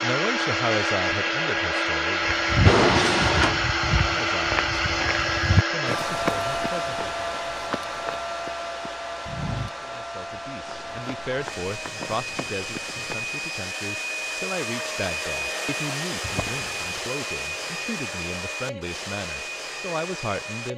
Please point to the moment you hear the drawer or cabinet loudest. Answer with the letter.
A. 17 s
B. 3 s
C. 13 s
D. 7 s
B.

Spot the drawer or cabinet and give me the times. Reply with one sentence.
The drawer or cabinet can be heard from 2.6 to 3.6 s and from 16.2 to 16.9 s.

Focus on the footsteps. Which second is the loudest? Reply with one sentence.
The loudest moment of the footsteps is at 3 seconds.